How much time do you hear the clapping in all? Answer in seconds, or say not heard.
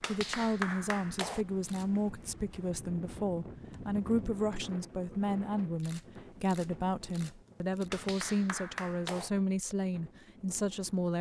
3 s.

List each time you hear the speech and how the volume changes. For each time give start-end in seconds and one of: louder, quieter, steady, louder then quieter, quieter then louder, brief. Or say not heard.
0.1-11.1 steady.